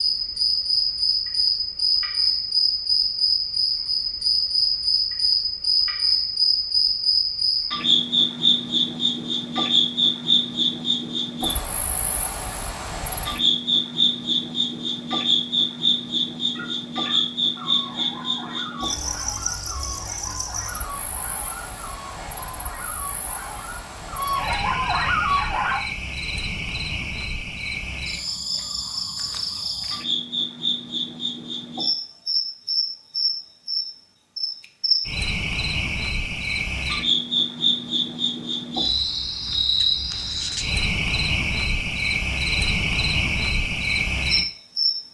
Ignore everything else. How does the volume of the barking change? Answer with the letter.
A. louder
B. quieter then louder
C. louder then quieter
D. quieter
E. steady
A.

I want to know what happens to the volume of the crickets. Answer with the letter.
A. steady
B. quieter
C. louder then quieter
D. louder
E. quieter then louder
E.